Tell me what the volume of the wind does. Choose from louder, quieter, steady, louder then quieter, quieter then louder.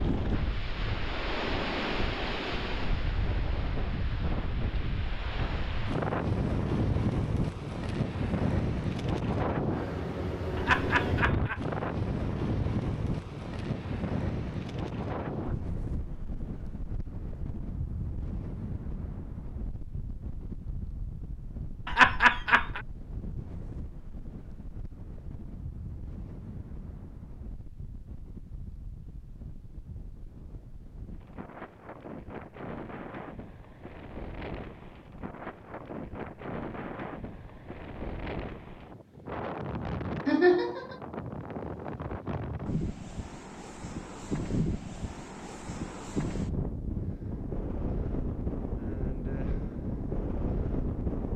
quieter then louder.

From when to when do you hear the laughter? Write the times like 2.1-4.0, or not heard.
10.6-11.6, 21.9-22.8, 40.2-41.0.